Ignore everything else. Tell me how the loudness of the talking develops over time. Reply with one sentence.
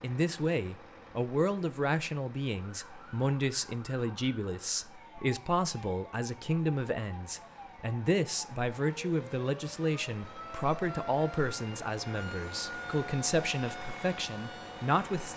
The loudness of the talking stays about the same.